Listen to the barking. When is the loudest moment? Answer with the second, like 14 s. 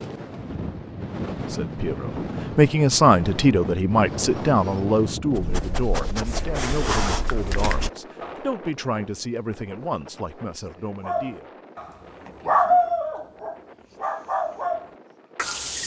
13 s.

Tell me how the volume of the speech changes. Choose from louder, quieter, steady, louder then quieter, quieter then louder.
quieter.